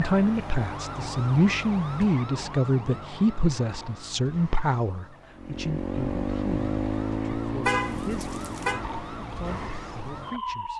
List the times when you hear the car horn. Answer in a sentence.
The car horn can be heard from 7.7 to 8.8 s.